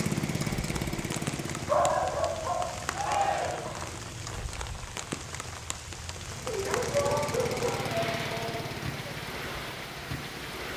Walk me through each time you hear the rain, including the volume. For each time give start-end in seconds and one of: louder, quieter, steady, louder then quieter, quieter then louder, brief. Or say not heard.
0.0-10.7 steady.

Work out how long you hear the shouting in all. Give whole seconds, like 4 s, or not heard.
3 s.